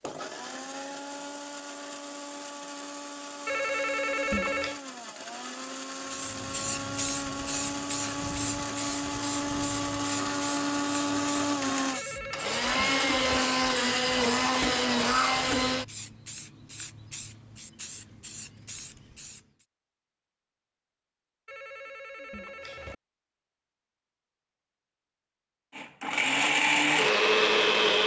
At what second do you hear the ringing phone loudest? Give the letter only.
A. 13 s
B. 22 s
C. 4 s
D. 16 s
C.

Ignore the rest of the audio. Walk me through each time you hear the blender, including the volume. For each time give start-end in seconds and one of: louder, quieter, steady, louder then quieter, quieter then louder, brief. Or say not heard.
0.0-15.8 louder
25.8-28.0 brief.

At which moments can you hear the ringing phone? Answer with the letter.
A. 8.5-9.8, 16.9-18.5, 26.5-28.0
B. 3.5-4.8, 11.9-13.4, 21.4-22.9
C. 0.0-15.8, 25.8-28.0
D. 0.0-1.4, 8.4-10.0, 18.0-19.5
B.